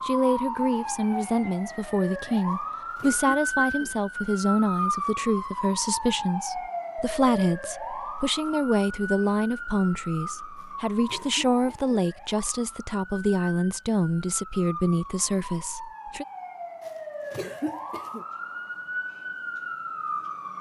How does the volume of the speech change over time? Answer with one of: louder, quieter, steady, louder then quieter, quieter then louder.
steady.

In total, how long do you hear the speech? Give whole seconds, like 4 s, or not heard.
16 s.